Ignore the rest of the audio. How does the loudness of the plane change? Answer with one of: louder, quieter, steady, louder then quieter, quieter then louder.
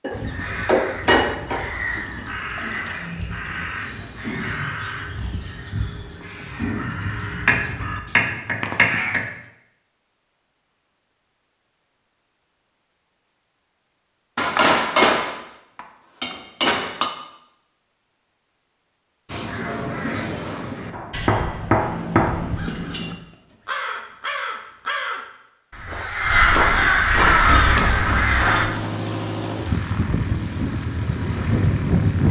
louder.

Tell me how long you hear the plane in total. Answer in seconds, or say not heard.
5 s.